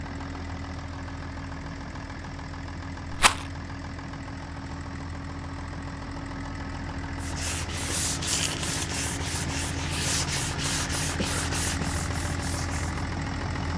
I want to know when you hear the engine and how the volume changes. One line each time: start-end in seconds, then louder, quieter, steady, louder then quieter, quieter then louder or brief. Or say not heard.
0.0-13.7 louder.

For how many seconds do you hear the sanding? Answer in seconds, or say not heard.
6 s.